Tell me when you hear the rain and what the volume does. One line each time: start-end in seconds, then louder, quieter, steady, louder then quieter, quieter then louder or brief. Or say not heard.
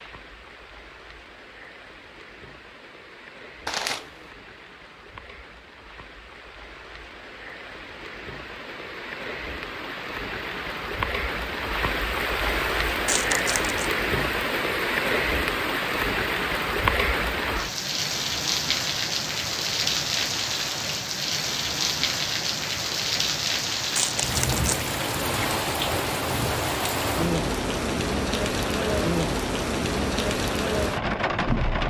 0.0-31.8 louder.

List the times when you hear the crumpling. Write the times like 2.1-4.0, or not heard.
3.6-4.2, 13.1-13.9, 23.9-24.9.